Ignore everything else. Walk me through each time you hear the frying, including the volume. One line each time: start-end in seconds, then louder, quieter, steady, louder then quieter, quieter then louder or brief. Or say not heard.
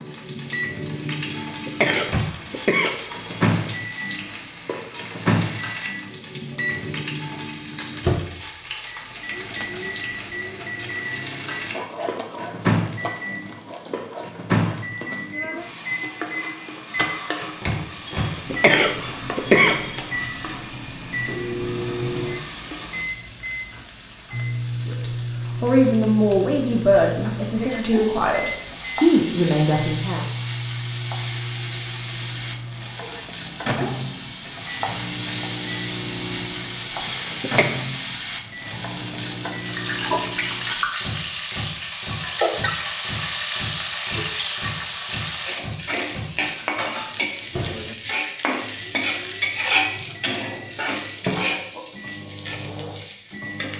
0.0-53.7 louder.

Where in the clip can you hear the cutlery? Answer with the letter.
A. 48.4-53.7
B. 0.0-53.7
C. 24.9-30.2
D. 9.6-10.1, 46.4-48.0
D.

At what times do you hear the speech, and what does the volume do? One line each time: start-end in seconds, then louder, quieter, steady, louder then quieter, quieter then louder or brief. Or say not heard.
24.9-30.2 quieter then louder.